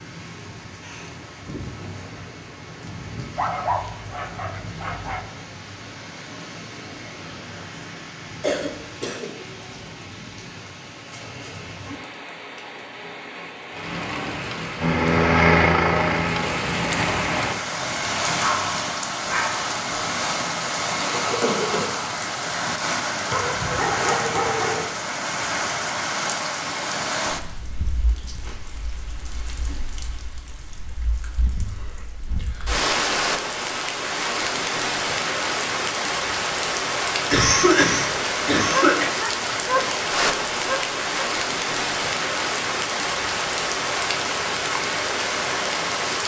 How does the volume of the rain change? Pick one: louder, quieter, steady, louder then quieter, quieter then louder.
louder.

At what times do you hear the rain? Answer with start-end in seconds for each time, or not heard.
0.0-46.2.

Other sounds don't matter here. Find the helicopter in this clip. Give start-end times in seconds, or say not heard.
14.8-17.6.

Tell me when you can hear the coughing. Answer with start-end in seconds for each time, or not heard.
8.4-9.6, 21.2-21.9, 37.3-39.0.